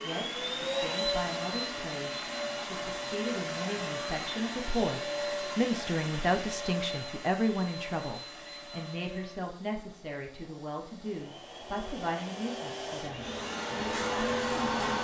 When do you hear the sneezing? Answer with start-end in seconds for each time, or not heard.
not heard.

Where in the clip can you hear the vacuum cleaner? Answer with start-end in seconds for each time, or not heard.
0.0-14.9.